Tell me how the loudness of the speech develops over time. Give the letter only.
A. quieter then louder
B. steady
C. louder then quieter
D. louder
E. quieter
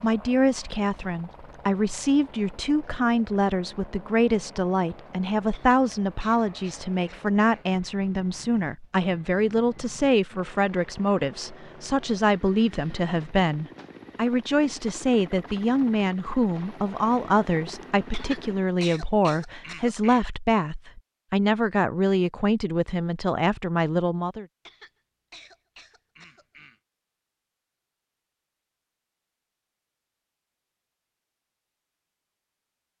B.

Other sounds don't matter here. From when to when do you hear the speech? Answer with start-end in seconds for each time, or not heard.
0.0-24.4.